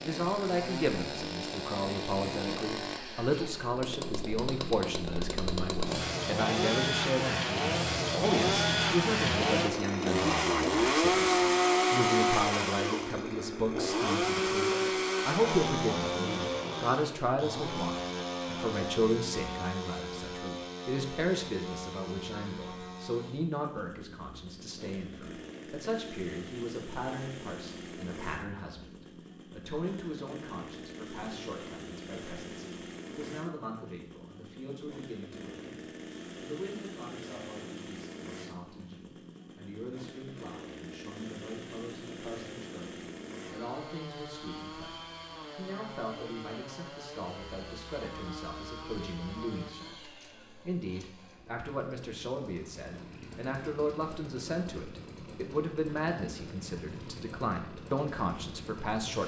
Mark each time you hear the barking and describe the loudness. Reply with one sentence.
You can't hear the barking here.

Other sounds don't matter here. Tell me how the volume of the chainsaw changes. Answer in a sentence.
The volume of the chainsaw goes down.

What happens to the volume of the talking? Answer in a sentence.
The loudness of the talking goes down, then up.